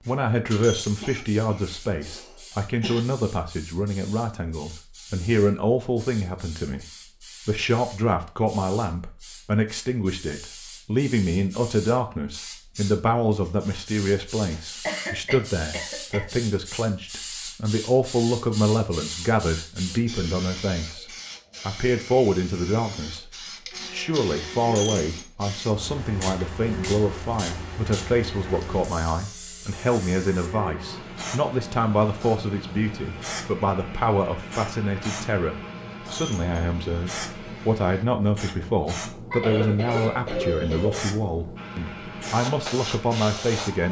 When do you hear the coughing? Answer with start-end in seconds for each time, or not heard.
1.0-3.0, 14.8-16.4, 39.3-41.1.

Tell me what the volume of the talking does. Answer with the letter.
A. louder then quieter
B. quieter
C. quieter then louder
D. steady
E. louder
D.